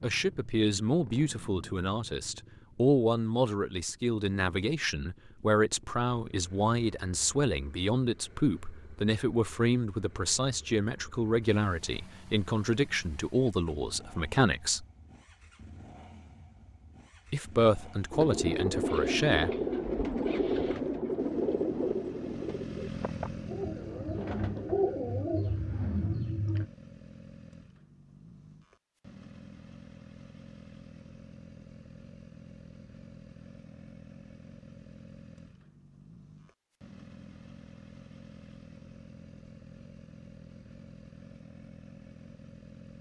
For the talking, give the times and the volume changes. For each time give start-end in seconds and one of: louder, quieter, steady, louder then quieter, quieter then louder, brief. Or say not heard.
0.0-14.8 steady
17.3-19.5 brief.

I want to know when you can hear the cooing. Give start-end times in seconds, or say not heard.
18.1-26.6.